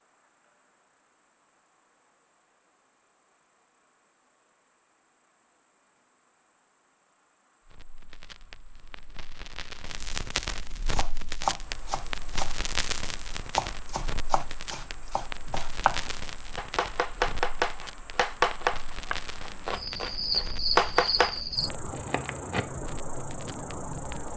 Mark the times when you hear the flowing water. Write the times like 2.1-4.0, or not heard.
not heard.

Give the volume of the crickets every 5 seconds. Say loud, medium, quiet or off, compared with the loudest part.
quiet, quiet, quiet, quiet, loud.